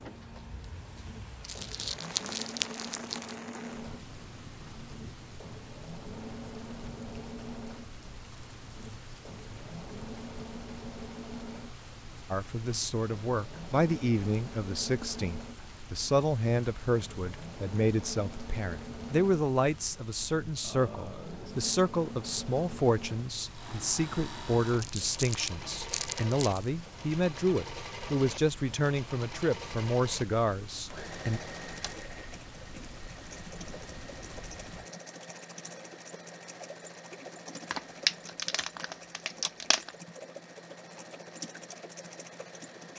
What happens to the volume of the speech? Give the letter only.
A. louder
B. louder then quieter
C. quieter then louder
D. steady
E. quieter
D.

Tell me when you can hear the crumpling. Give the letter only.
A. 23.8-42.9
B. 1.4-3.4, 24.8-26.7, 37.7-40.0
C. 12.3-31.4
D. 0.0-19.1
B.